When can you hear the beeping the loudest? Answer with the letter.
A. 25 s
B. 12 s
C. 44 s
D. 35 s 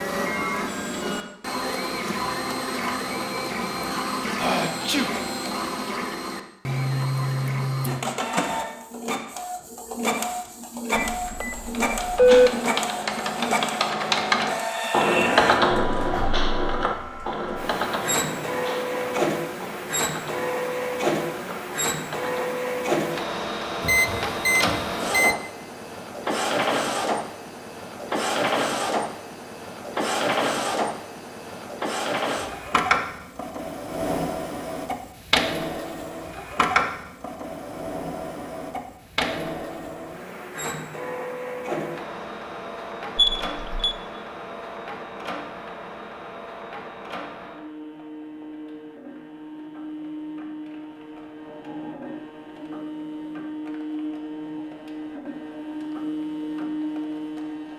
B.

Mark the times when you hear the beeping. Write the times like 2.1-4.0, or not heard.
10.9-12.5, 23.8-25.4, 43.1-44.0.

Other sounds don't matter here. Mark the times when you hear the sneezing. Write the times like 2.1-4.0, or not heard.
4.3-5.1.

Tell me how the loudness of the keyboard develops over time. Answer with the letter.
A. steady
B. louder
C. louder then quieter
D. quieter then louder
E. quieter
C.